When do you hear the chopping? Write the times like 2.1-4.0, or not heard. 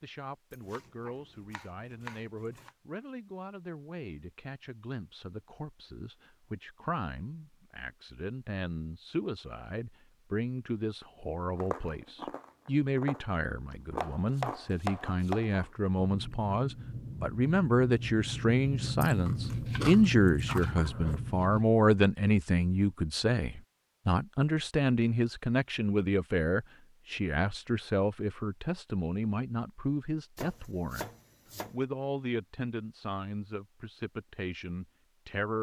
0.5-2.7, 14.0-15.6, 19.6-20.9, 30.4-31.8.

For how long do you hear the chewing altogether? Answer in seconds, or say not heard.
10 s.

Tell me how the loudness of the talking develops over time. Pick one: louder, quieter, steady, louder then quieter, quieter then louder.
louder then quieter.